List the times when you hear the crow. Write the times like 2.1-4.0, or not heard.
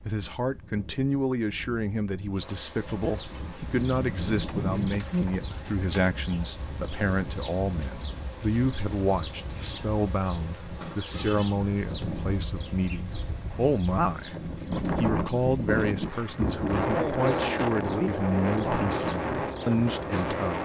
not heard.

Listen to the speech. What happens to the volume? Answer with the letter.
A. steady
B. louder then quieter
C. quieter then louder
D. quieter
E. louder
A.